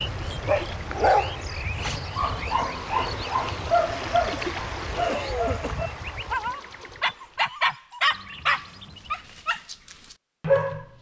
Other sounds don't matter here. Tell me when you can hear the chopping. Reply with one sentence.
The chopping can't be heard in this clip.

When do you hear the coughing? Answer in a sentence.
You can hear the coughing from 4.9 to 5.8 s.